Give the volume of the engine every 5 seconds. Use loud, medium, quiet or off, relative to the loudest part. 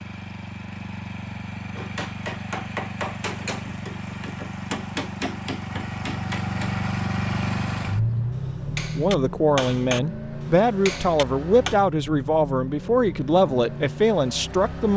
medium, loud, medium.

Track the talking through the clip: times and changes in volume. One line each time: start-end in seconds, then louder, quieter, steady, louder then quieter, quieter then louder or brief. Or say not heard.
8.7-14.9 steady.